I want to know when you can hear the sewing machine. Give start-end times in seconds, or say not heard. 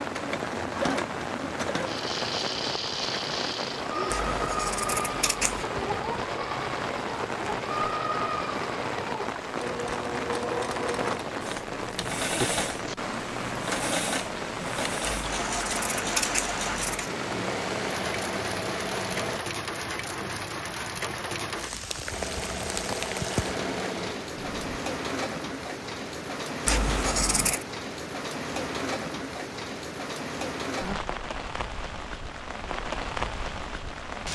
0.0-19.4, 22.1-24.8.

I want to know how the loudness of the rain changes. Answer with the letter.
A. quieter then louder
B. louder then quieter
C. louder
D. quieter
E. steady
E.